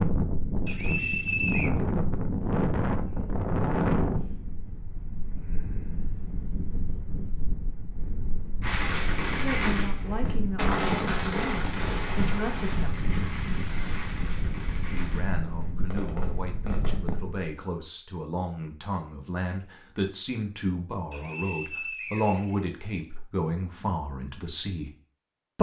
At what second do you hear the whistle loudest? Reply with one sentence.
The loudest moment of the whistle is at 1 second.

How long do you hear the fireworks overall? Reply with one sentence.
You can hear the fireworks for 8 seconds altogether.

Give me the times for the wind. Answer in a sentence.
The wind can be heard from 0.0 to 17.4 s.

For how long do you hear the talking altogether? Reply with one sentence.
You can hear the talking for 14 seconds altogether.